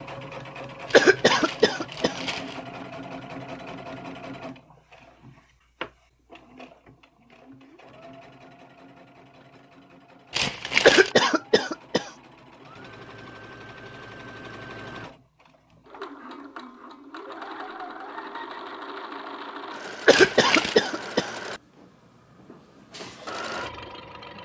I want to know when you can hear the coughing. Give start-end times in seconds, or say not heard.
0.9-2.1, 10.8-12.1, 20.1-21.3.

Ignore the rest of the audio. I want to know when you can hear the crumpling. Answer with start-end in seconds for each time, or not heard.
0.8-2.6, 10.3-11.2, 20.1-20.8.